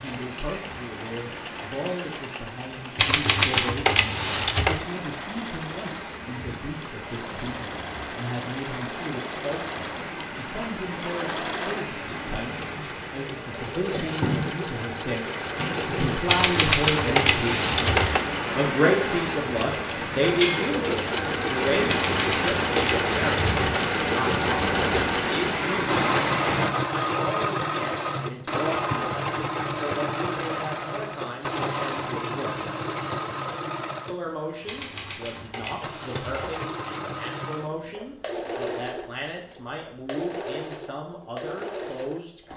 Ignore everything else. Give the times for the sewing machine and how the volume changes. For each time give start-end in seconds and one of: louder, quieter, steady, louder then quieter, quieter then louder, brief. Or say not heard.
0.0-42.5 louder then quieter.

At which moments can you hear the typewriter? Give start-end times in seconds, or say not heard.
3.0-4.8, 16.2-18.2, 21.9-23.8, 34.6-36.6.